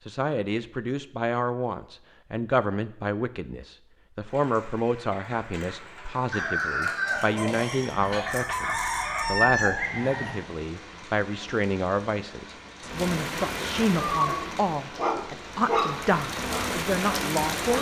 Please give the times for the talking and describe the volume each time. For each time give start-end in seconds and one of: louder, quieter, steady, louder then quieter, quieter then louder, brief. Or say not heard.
0.1-17.7 steady.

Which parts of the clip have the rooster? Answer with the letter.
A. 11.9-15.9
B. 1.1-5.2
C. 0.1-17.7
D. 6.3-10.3
D.